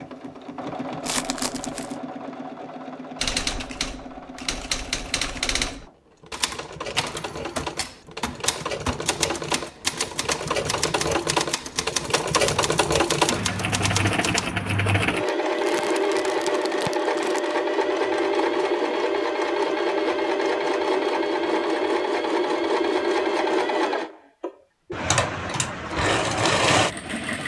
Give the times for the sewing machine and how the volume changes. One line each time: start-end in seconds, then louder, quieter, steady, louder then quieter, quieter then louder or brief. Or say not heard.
0.0-27.4 louder.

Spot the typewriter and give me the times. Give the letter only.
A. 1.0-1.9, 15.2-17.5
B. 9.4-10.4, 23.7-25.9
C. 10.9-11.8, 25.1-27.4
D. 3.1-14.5
D.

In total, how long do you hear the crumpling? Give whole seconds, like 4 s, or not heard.
3 s.